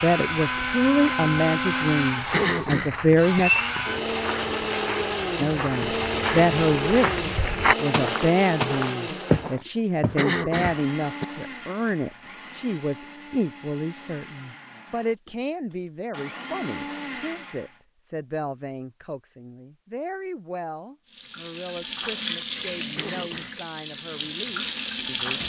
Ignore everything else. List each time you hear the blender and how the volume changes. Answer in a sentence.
You can hear the blender from 0.0 to 17.8 s, getting quieter.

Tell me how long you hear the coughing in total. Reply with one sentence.
The coughing can be heard for 3 seconds in total.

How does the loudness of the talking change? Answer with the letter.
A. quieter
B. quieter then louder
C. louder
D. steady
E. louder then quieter
A.